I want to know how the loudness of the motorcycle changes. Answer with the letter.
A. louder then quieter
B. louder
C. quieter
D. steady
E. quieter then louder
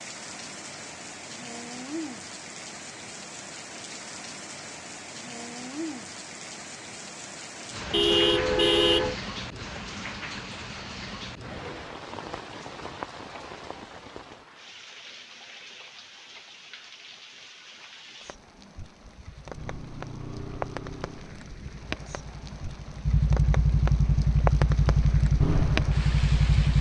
E.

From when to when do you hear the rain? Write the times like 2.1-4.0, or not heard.
0.0-26.7.